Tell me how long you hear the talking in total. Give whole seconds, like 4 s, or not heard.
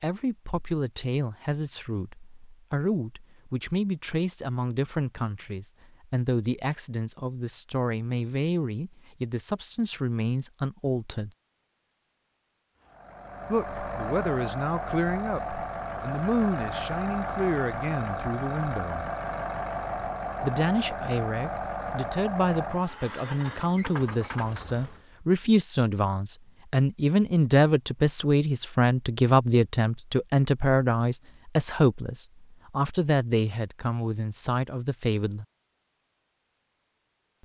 32 s.